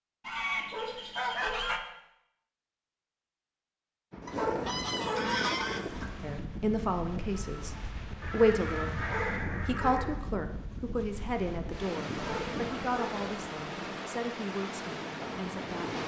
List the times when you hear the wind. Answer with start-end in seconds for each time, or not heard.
4.1-16.0.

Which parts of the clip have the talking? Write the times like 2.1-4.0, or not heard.
6.2-8.9, 9.7-16.0.